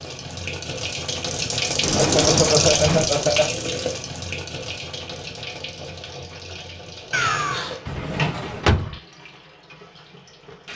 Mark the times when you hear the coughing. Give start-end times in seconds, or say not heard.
1.9-3.5, 7.1-7.8.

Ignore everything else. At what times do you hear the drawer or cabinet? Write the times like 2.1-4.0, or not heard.
1.8-3.1, 7.8-8.9.